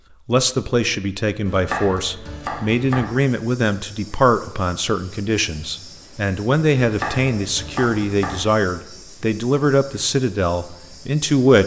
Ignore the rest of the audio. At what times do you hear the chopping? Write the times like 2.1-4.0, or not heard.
1.4-3.1, 6.8-8.4.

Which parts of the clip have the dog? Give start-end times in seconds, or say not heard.
not heard.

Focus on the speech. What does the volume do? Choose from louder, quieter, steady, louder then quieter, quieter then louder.
steady.